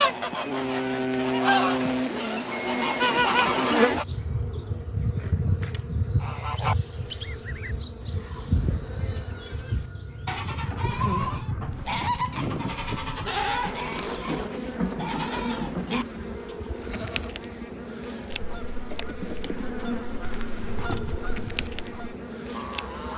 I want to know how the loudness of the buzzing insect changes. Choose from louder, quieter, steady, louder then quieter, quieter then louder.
quieter.